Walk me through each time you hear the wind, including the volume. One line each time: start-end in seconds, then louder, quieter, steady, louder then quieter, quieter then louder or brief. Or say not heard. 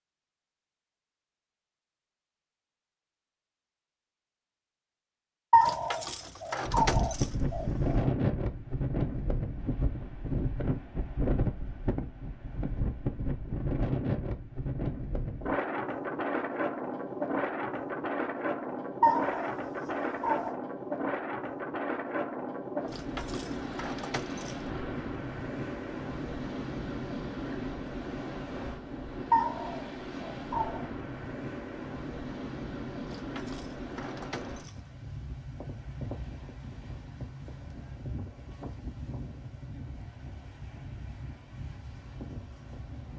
6.7-43.1 quieter.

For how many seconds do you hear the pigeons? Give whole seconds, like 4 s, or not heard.
6 s.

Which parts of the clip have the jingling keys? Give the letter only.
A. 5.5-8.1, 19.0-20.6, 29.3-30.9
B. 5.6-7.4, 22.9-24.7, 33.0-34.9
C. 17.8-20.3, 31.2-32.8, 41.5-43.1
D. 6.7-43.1
B.